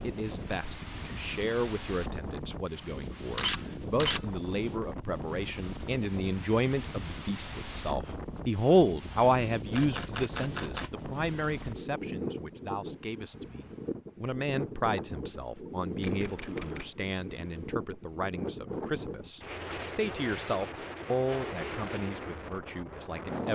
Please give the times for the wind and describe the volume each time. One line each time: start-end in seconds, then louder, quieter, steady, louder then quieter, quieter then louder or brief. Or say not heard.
0.0-23.5 steady.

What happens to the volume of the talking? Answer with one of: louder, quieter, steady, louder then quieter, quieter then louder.
louder then quieter.